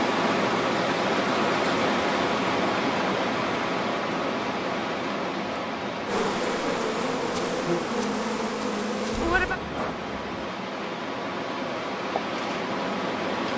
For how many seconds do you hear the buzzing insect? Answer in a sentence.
The buzzing insect can be heard for 4 seconds in total.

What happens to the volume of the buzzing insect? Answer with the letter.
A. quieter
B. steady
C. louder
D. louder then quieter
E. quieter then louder
B.